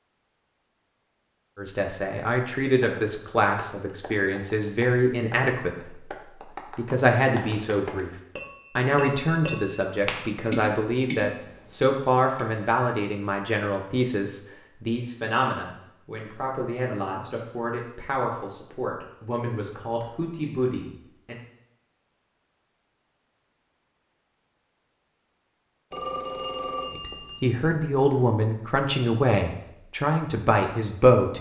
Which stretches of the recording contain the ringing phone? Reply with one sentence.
You can hear the ringing phone from 11.2 to 13.1 s and from 25.9 to 27.4 s.